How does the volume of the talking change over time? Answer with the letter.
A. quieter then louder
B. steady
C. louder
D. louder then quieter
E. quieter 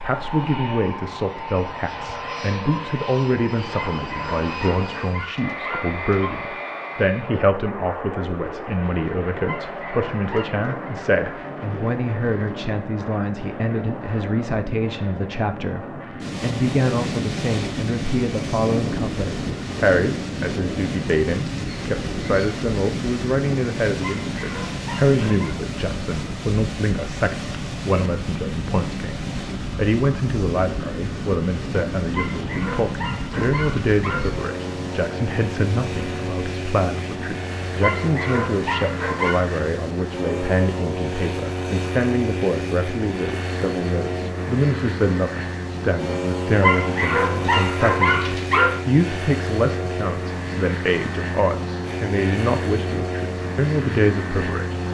B.